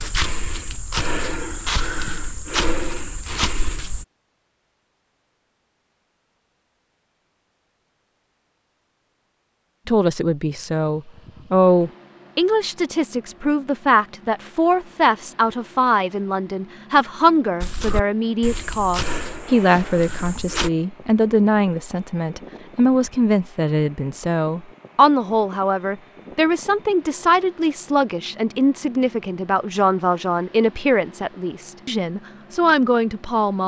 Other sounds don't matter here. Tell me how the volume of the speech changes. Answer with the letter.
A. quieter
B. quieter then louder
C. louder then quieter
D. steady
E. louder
D.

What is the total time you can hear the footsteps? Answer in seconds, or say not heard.
7 s.